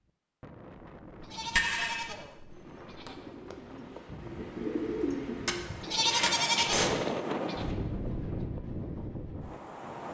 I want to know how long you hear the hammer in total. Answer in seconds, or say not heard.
2 s.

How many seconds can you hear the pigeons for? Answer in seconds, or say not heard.
5 s.